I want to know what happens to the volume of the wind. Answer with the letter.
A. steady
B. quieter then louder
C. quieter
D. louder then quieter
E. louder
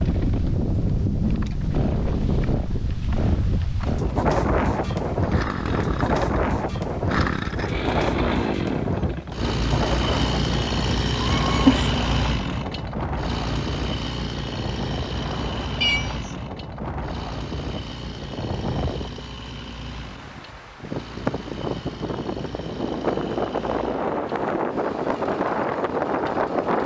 B.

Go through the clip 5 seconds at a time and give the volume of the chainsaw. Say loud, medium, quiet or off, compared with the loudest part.
medium, loud, loud, medium, quiet, quiet.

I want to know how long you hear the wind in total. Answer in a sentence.
You can hear the wind for 27 seconds altogether.